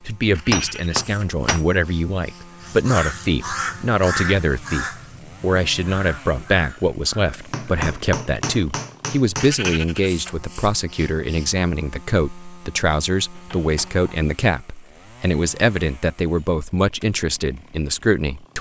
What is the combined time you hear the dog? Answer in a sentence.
You can't hear the dog here.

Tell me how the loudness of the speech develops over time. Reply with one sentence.
The loudness of the speech stays about the same.